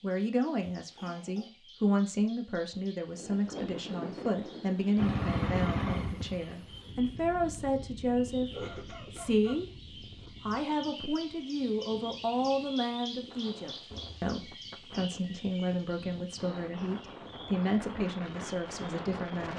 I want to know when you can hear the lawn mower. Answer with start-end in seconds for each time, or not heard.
5.0-6.6.